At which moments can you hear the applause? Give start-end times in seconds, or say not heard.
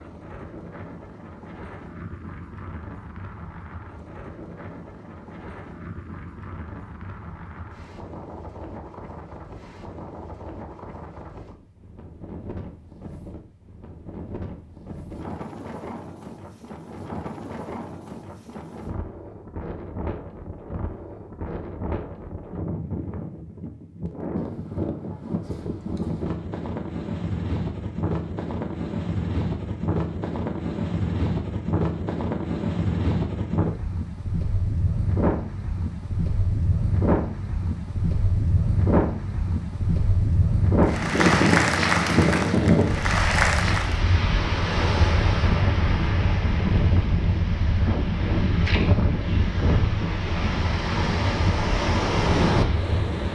40.8-44.0.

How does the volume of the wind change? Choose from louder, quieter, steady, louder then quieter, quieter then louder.
louder.